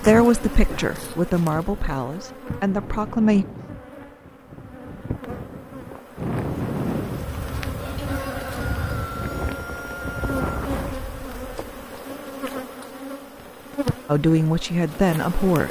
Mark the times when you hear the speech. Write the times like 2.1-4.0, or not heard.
0.0-3.5, 14.1-15.6.